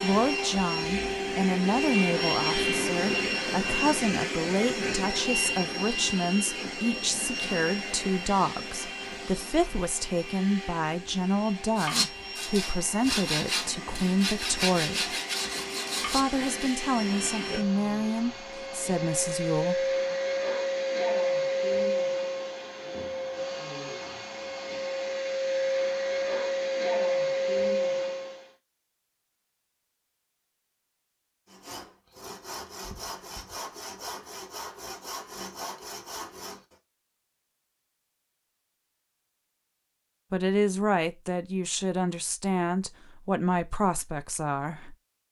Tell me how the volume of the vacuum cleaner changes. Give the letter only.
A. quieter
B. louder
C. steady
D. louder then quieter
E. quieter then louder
E.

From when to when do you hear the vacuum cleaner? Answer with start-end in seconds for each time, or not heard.
0.0-28.4.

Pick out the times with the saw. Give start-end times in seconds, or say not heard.
11.8-16.9, 31.4-36.8.